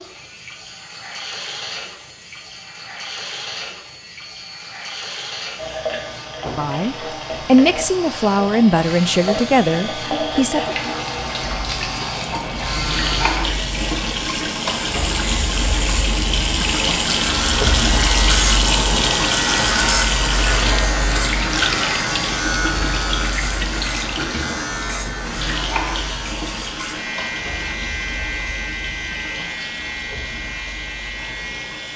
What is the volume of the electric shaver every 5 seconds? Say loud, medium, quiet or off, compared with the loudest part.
quiet, medium, medium, loud, loud, medium, medium.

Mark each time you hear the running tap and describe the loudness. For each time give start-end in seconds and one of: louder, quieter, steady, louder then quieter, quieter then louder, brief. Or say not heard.
0.0-31.9 louder then quieter.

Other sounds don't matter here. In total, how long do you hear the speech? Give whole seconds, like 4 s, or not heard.
4 s.